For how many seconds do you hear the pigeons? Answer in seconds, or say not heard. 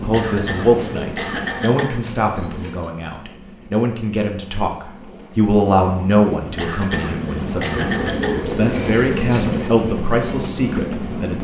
4 s.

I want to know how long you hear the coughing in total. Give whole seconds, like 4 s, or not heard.
4 s.